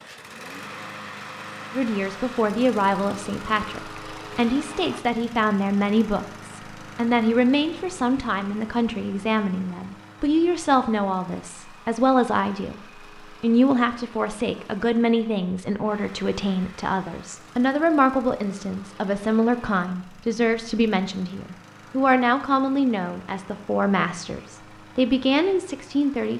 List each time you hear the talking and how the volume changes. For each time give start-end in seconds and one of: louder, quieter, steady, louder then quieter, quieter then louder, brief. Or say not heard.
1.7-26.3 steady.